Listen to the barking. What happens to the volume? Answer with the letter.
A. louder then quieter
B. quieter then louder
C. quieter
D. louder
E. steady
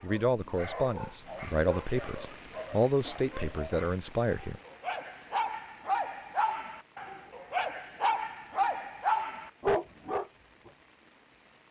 D.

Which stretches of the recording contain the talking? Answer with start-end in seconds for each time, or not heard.
0.0-4.6.